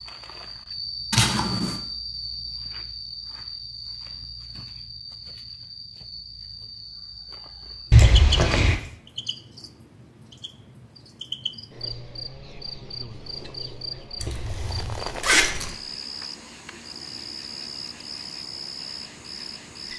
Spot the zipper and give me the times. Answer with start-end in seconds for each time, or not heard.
1.1-1.8, 7.9-8.8, 14.2-15.8.